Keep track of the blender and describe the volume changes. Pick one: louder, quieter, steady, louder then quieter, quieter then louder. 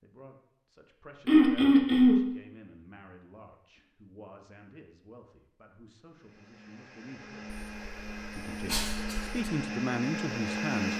louder.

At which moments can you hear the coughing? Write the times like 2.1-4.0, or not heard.
1.2-2.2, 7.5-9.5.